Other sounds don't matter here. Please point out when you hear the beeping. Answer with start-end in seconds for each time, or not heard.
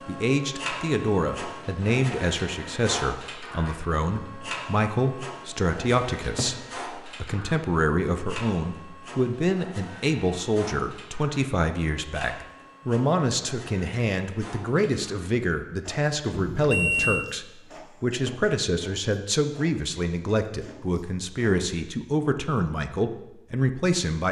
16.3-17.2.